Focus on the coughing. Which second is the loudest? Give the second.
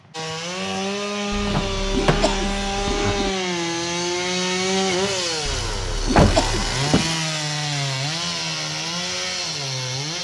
6 s.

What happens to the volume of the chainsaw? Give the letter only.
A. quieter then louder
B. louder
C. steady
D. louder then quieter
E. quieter
C.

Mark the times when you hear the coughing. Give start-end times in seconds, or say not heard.
1.3-3.4, 5.5-6.8.